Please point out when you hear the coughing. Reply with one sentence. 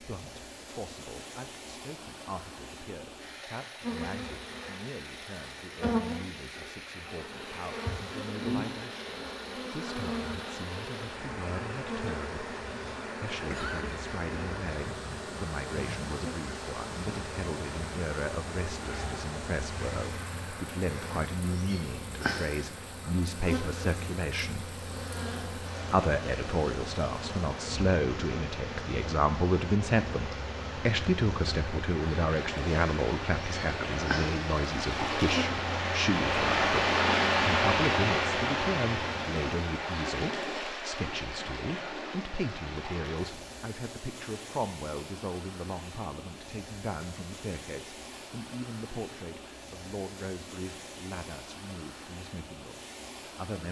You can hear the coughing from 13.3 to 14.0 s.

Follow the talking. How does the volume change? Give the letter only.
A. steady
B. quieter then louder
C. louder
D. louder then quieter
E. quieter
D.